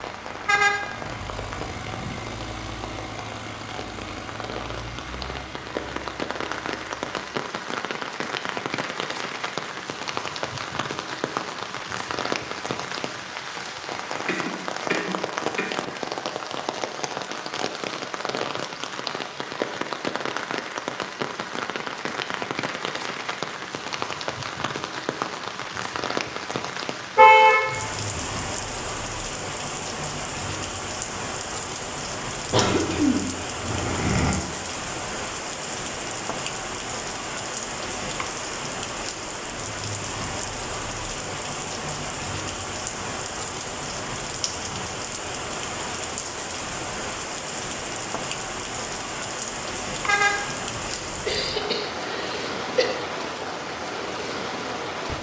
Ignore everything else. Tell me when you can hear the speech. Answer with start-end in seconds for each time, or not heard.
not heard.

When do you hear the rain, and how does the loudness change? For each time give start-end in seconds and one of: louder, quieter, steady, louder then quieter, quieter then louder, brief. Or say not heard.
0.0-55.1 steady.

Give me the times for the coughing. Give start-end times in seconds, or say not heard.
14.2-15.8, 32.5-34.4, 51.0-52.9.